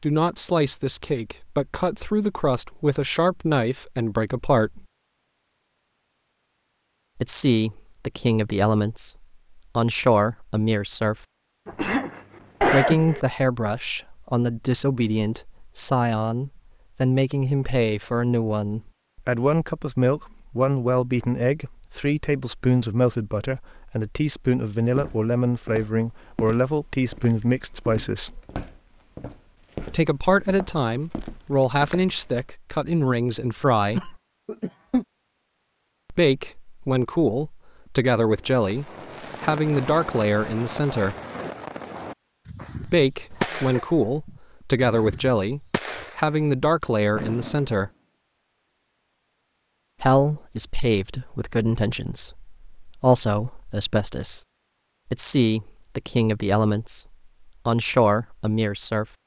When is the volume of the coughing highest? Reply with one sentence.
The volume of the coughing peaks at 13 seconds.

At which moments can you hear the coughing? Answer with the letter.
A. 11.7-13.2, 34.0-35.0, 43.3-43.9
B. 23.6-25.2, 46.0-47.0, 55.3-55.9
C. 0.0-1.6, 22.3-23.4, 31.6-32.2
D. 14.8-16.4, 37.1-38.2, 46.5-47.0
A.